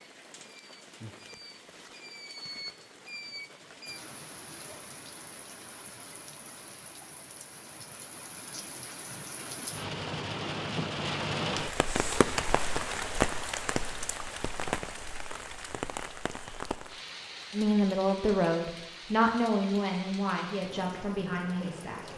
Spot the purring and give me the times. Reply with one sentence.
You can't hear the purring here.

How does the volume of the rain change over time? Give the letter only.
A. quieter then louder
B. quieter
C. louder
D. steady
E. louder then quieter
E.